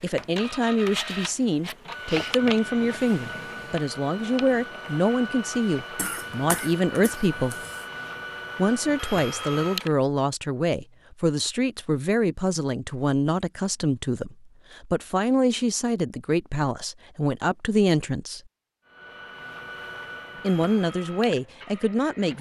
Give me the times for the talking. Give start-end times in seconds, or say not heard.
0.0-7.5, 8.6-18.4, 20.4-22.3.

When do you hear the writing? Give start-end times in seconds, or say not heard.
not heard.